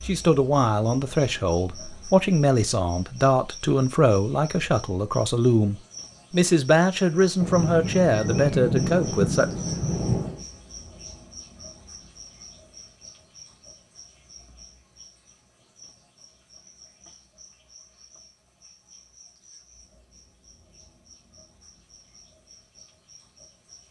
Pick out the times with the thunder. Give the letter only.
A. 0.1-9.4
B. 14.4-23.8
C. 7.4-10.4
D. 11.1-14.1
C.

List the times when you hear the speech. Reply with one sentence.
The speech can be heard from 0.1 to 9.4 s.